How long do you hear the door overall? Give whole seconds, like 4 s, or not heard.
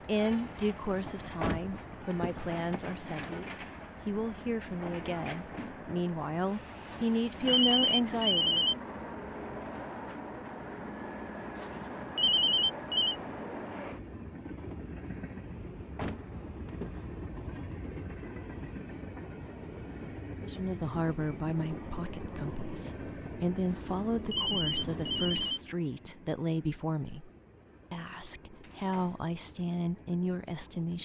3 s.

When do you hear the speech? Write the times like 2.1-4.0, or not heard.
0.1-8.7, 20.4-27.3, 27.9-30.9.